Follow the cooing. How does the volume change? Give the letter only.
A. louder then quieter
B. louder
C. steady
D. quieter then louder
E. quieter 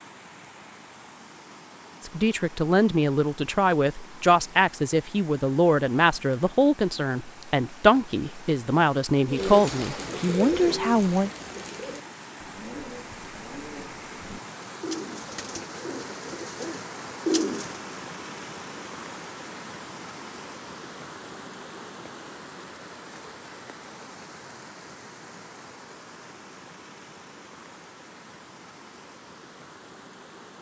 D.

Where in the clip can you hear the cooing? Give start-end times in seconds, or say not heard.
9.3-17.8.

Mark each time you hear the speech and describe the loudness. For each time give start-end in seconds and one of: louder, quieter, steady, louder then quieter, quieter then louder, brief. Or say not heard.
2.0-11.3 steady.